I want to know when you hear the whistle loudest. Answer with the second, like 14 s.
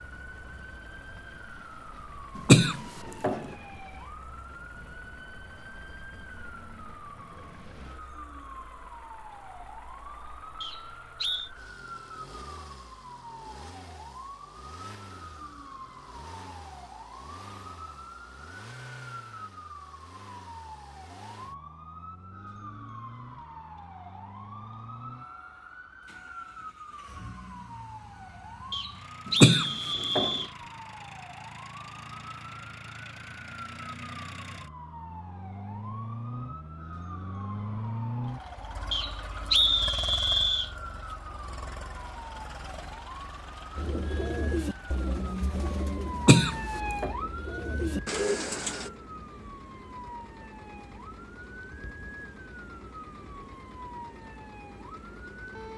40 s.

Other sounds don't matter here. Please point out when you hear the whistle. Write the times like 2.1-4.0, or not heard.
10.6-11.5, 28.7-30.5, 38.9-40.7.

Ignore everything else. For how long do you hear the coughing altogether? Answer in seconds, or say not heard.
3 s.